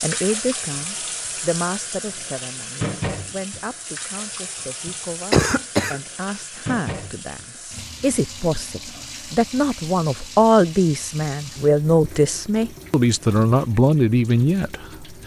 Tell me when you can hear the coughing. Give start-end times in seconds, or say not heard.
4.8-6.5.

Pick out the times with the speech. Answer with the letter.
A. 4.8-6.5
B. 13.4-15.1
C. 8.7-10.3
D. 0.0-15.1
D.